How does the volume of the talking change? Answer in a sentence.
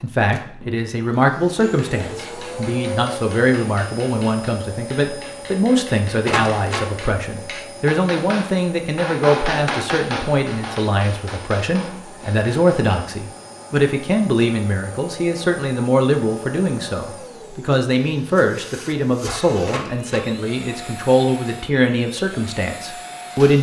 The volume of the talking stays about the same.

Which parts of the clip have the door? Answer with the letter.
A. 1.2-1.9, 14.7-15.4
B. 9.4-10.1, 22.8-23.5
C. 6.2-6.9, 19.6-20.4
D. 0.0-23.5
C.